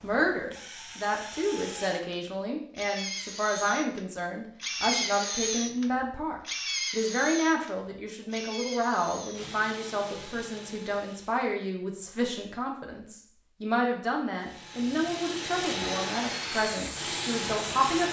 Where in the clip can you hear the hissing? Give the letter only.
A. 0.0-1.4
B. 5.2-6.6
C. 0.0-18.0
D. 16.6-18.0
D.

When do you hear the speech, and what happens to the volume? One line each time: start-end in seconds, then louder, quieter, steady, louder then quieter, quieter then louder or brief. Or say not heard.
0.0-18.0 steady.